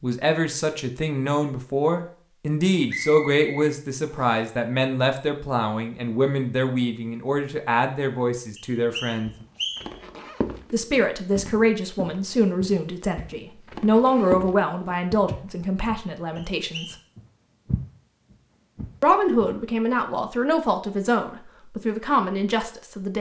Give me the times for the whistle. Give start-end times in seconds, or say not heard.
2.9-4.5, 8.6-10.0, 16.4-16.9.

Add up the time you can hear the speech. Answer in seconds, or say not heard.
20 s.